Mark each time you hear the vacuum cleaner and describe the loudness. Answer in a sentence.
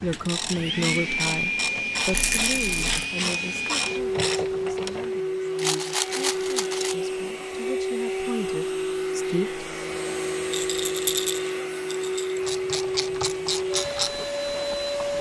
You can hear the vacuum cleaner from 0.0 to 15.1 s, at a steady volume.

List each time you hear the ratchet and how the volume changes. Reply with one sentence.
You can hear the ratchet from 0.0 to 5.2 s, at a steady volume; and briefly from 12.4 to 15.1 s.